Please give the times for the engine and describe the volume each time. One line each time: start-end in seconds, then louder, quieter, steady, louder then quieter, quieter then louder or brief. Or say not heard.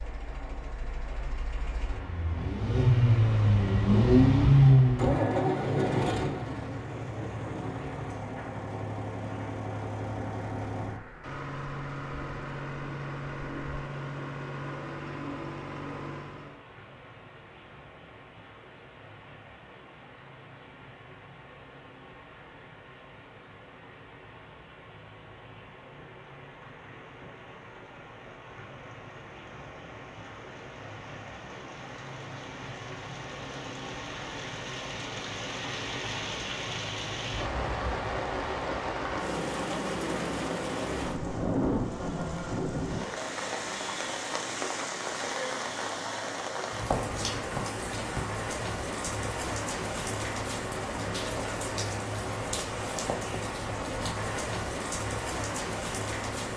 0.0-16.6 louder then quieter.